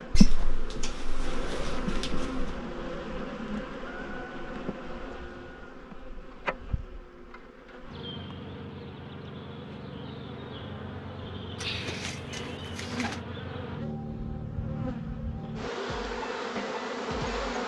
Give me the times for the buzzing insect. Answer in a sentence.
You can hear the buzzing insect from 0.0 to 17.6 s.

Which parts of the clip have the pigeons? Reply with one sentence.
The pigeons can be heard from 0.1 to 2.6 s and from 11.6 to 13.2 s.